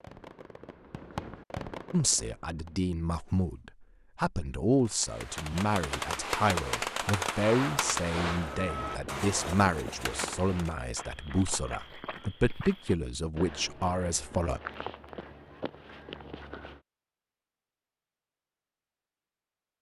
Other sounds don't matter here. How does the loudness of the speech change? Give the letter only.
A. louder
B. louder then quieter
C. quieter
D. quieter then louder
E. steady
E.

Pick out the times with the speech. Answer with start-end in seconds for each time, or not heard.
1.9-14.6.